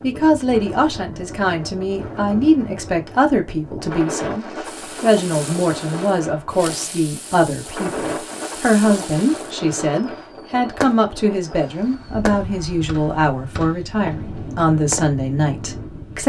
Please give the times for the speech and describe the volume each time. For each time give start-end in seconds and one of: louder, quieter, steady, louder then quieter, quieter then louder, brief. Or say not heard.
0.0-16.2 steady.